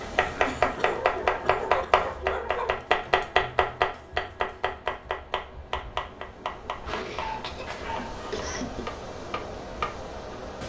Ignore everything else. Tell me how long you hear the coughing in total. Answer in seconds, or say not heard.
4 s.